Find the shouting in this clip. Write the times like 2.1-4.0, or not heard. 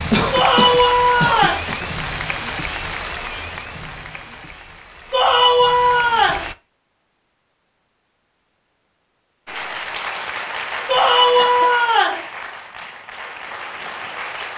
0.3-1.6, 5.1-6.5, 10.8-12.2.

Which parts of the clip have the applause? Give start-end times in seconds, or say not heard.
0.0-6.5, 9.4-14.5.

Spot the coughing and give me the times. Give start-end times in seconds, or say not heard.
0.1-1.9, 10.9-11.8.